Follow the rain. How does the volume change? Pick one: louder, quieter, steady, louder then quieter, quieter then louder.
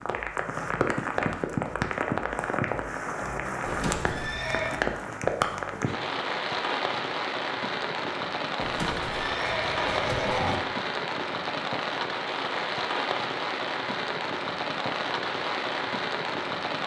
steady.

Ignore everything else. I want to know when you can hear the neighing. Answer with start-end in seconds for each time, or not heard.
3.6-4.8, 8.6-10.6.